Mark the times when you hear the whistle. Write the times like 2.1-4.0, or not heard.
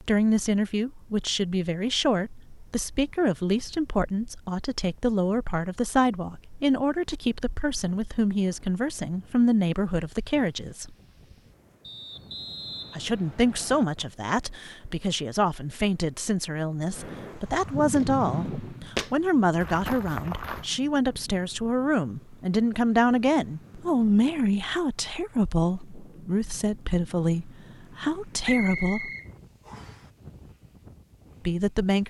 11.8-13.8, 28.4-30.1.